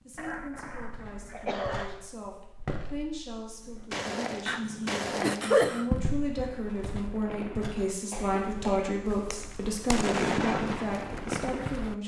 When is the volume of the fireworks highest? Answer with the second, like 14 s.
10 s.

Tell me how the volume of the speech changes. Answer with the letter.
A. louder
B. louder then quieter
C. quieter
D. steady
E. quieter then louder
A.